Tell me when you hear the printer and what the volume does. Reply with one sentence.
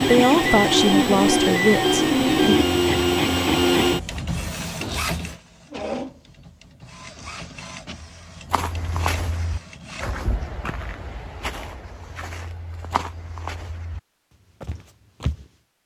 You can hear the printer from 0.0 to 10.2 s, getting quieter.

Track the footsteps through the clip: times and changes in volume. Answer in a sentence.
You can hear the footsteps from 8.4 to 14.0 s, getting quieter then louder; and briefly from 14.6 to 15.5 s.